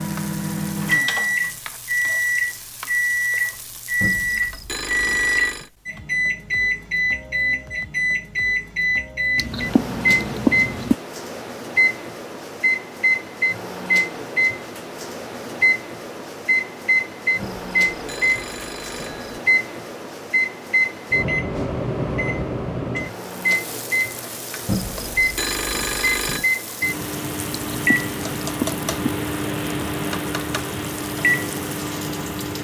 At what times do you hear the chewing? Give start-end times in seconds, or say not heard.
9.3-10.9, 27.5-29.1.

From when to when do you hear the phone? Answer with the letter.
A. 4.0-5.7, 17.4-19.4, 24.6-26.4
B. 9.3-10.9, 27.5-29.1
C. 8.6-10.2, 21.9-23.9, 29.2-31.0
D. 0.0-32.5
A.